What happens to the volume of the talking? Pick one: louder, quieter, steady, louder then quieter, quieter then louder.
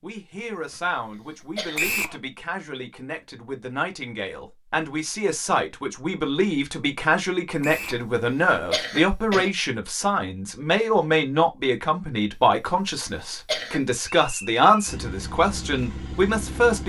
louder.